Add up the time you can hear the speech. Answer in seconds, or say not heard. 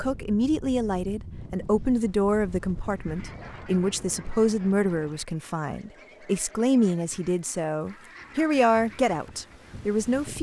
10 s.